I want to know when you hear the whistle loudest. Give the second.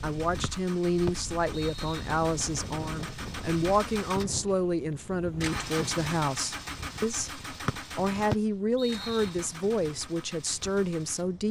8 s.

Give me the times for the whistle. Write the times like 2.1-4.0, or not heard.
0.4-2.0, 7.7-9.3.